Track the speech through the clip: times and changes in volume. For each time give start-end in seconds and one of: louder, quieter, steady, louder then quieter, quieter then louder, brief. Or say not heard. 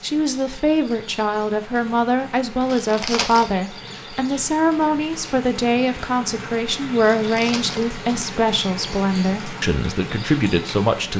0.0-11.1 steady.